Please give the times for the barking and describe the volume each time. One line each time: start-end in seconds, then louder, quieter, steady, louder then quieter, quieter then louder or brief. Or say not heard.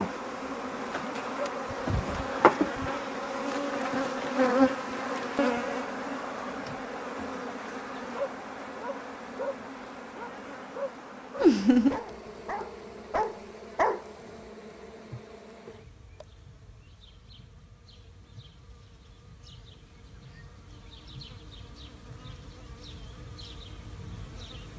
8.1-14.1 quieter then louder.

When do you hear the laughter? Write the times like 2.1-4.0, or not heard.
11.4-12.0.